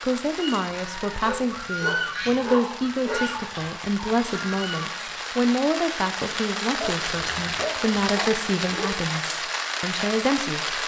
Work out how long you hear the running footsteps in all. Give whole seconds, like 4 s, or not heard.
not heard.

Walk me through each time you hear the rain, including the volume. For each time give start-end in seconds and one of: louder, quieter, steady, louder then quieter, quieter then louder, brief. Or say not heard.
0.0-10.8 louder.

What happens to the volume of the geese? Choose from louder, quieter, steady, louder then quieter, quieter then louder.
louder then quieter.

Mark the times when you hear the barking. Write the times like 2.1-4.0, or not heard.
1.2-3.2, 6.8-8.9.